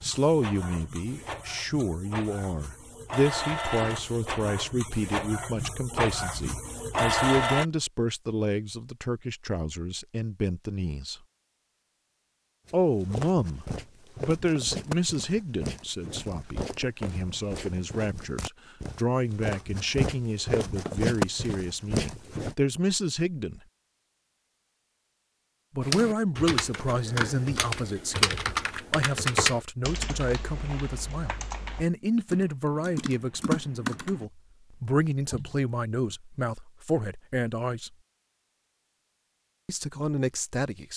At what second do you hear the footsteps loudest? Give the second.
21 s.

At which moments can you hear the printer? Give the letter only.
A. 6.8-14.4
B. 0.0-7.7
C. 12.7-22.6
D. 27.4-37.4
B.